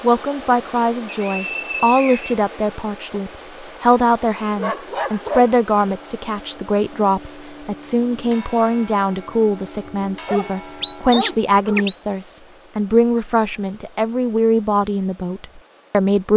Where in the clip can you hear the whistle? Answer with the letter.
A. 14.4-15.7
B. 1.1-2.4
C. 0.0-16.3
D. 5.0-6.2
B.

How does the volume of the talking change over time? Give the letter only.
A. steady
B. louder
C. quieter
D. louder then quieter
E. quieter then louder
A.